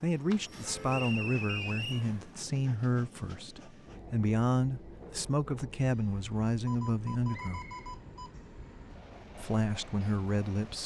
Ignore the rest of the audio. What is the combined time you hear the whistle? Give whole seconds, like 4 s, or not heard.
2 s.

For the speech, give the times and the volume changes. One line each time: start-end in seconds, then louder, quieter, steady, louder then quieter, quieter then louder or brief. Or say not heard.
0.0-7.6 steady
9.3-10.8 brief.